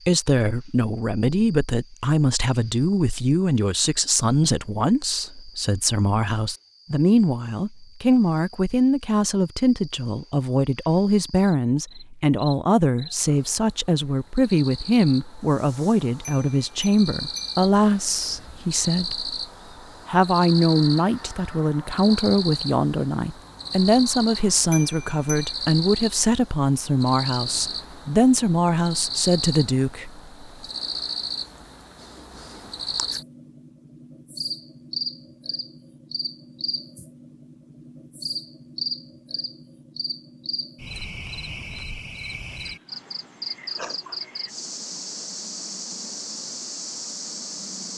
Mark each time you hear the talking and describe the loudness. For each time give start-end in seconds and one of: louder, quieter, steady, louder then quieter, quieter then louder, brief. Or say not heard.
0.1-19.4 steady
20.1-30.2 steady.